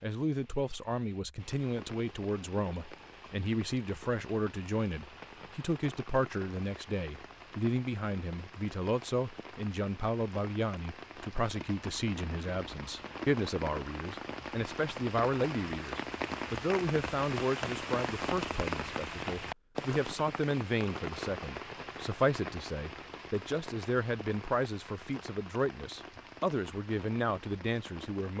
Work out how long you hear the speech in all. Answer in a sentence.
The speech can be heard for 28 seconds in total.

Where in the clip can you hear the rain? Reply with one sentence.
You can hear the rain from 0.0 to 28.3 s.